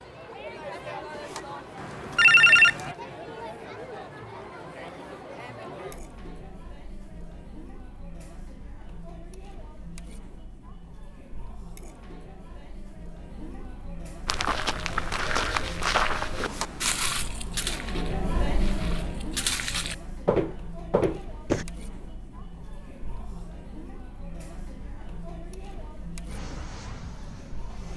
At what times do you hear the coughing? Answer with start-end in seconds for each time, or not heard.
not heard.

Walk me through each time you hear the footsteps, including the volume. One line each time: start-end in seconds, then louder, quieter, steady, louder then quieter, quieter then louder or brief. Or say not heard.
14.2-21.6 quieter then louder.